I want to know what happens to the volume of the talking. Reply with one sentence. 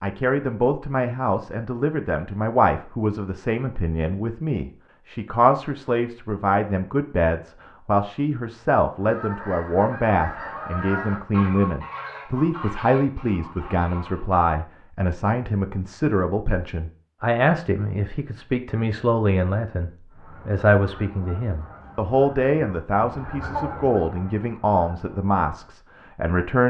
The loudness of the talking stays about the same.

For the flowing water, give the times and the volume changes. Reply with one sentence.
You can't hear the flowing water here.